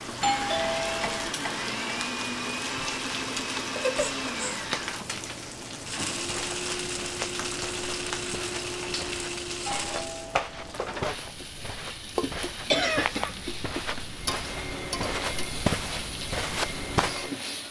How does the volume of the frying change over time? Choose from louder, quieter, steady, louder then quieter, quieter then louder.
steady.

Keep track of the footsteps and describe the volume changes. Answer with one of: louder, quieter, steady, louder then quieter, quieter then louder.
louder.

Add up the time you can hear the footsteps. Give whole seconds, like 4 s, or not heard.
11 s.